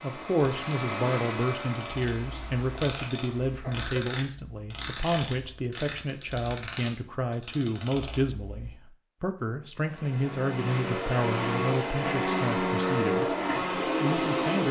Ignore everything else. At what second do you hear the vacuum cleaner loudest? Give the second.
13 s.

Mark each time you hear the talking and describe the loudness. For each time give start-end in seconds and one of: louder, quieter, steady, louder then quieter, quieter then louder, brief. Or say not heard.
0.0-14.6 steady.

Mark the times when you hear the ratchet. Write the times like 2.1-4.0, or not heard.
0.4-8.7.